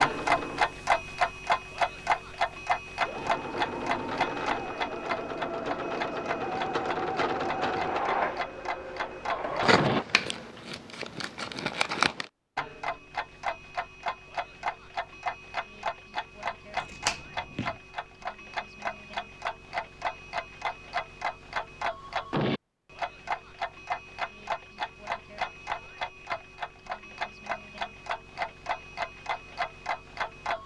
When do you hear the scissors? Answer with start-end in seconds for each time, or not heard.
9.6-12.2, 16.8-17.8.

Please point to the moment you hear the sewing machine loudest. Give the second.
8 s.